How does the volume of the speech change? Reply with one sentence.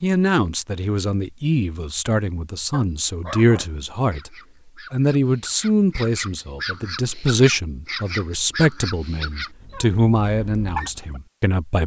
The loudness of the speech stays about the same.